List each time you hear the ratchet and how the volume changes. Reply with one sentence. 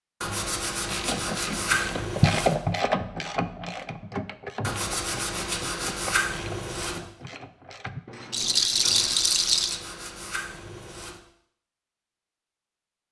You can hear the ratchet from 0.8 to 9.2 s, getting quieter.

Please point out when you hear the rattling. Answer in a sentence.
The rattling can be heard from 8.3 to 9.8 s.